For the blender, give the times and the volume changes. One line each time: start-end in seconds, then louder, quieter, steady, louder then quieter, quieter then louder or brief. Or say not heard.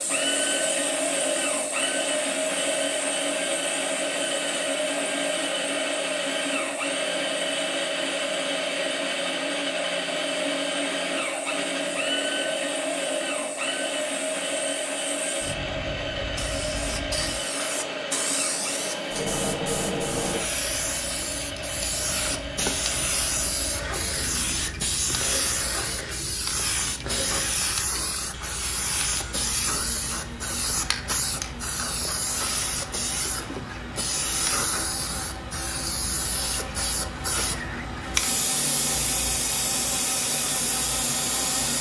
0.0-41.7 quieter.